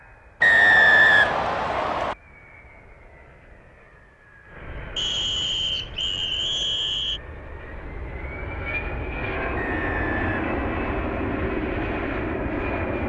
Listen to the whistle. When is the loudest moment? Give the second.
1 s.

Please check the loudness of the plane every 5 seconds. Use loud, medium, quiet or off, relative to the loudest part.
quiet, medium, loud.